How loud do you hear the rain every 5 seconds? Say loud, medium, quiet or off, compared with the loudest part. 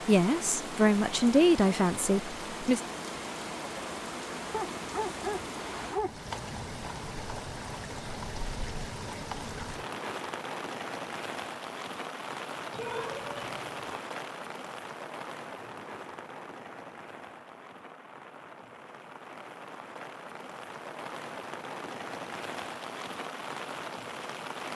loud, loud, loud, medium, loud.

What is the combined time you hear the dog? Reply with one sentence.
You can hear the dog for 3 seconds altogether.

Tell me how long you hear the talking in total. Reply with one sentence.
The talking can be heard for 3 seconds in total.